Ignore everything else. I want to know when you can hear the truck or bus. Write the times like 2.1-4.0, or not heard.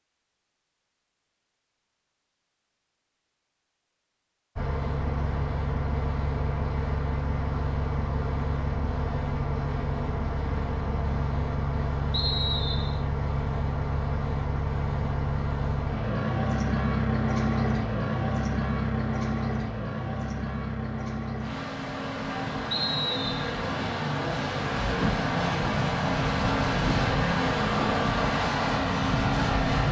4.5-29.8.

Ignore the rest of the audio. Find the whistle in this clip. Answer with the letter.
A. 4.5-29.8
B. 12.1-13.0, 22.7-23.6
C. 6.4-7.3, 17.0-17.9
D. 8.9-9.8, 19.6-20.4
B.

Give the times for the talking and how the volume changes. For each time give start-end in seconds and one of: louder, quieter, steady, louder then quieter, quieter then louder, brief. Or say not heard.
not heard.